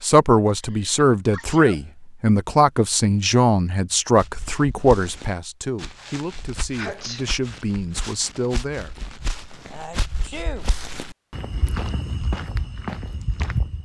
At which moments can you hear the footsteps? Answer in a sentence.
You can hear the footsteps from 4.2 to 13.8 s.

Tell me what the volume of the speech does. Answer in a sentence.
The loudness of the speech goes down.